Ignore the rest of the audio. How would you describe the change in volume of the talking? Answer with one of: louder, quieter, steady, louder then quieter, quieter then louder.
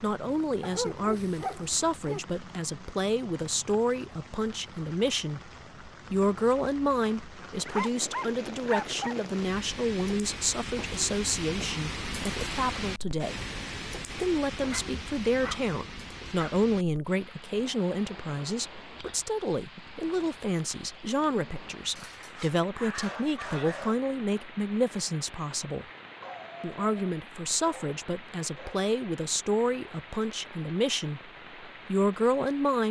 steady.